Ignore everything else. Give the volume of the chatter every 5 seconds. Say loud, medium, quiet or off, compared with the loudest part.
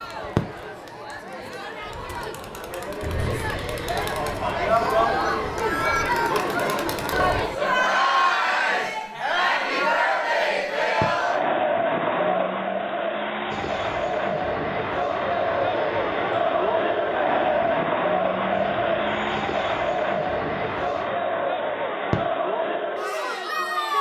medium, loud, loud, loud, loud.